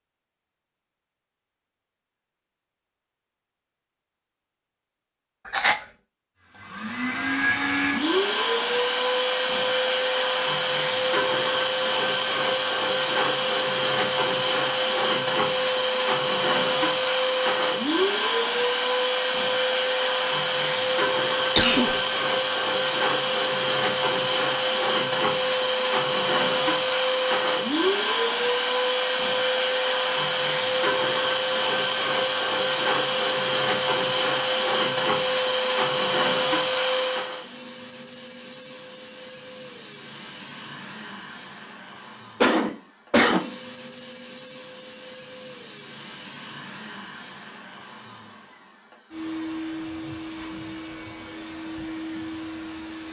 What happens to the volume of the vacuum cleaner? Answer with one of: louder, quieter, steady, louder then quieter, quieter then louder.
quieter.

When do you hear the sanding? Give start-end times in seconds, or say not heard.
not heard.